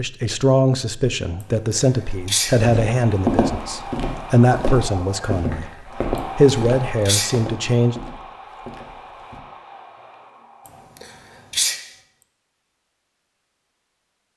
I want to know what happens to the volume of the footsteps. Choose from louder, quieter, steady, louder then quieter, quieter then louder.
quieter.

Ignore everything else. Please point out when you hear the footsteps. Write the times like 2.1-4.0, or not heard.
2.5-9.4.